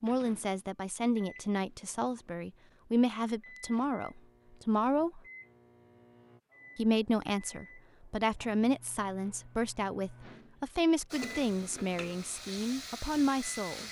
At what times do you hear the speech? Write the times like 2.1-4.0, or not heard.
0.0-5.2, 6.8-13.8.